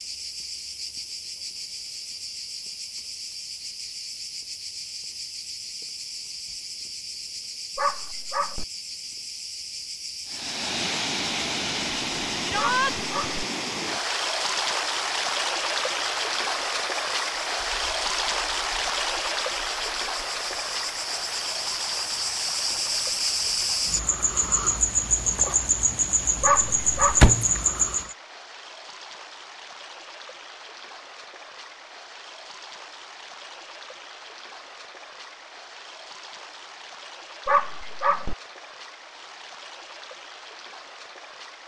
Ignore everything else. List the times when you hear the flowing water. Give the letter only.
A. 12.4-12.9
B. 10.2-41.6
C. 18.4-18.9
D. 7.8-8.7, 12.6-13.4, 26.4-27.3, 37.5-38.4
B.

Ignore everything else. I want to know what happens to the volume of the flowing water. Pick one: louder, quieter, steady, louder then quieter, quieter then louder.
quieter.